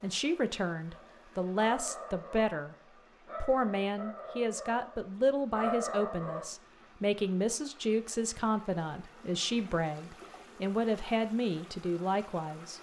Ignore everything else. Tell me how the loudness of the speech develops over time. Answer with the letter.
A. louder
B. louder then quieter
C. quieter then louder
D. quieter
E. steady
E.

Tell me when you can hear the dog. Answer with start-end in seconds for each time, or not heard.
0.9-6.5.